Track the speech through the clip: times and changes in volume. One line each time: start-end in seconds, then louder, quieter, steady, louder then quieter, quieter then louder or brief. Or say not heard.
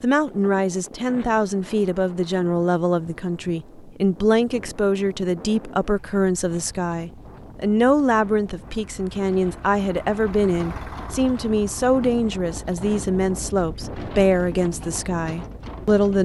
0.0-16.2 steady.